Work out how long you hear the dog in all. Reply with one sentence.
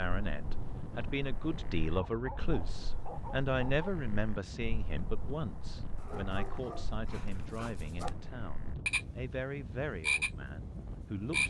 You can hear the dog for 4 seconds altogether.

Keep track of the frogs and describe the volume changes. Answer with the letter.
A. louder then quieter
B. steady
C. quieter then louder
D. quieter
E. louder
E.